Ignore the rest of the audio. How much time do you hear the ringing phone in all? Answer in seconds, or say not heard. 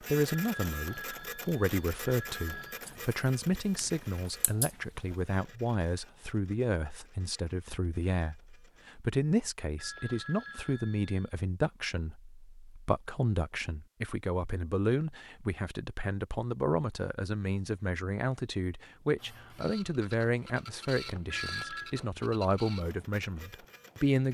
5 s.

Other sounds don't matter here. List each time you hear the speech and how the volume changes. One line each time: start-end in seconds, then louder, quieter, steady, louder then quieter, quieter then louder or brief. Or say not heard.
0.0-24.2 steady.